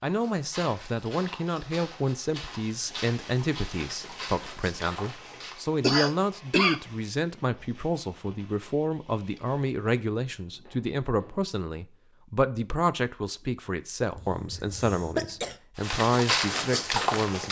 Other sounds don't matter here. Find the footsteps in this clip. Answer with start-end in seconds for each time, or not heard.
0.0-5.6, 15.8-17.4.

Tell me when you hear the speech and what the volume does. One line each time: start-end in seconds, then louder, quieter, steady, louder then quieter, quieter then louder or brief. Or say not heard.
0.0-17.4 steady.